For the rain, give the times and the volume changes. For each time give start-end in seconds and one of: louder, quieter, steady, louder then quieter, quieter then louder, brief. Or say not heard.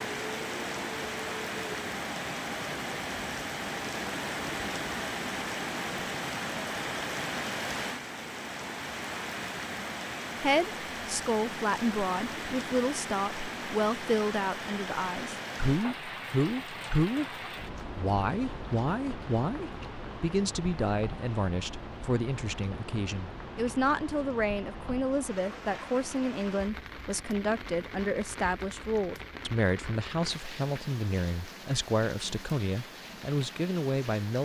0.0-34.4 quieter.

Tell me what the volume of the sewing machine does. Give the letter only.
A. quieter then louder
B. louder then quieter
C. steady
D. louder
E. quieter
C.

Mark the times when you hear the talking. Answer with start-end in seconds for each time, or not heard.
10.4-17.4, 17.9-34.4.